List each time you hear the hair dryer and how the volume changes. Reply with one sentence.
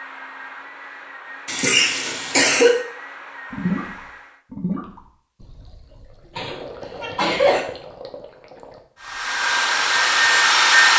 The hair dryer can be heard from 0.0 to 4.4 s, at a steady volume; and briefly from 9.0 to 10.9 s.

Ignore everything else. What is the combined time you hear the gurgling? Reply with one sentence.
The gurgling can be heard for 7 seconds in total.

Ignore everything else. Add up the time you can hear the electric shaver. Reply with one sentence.
You can't hear the electric shaver here.